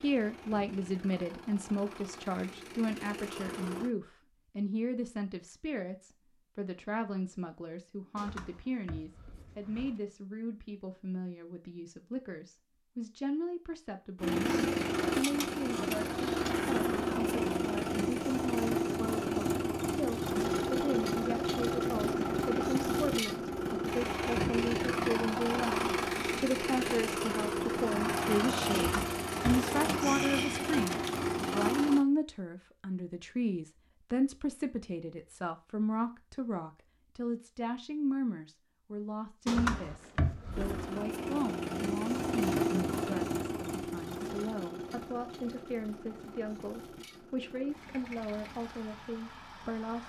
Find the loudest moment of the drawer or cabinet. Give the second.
40 s.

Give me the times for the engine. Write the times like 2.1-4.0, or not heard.
0.0-3.9, 14.2-32.0, 40.5-50.0.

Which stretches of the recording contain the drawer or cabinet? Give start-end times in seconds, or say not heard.
8.2-10.0, 28.7-29.6, 39.5-41.0.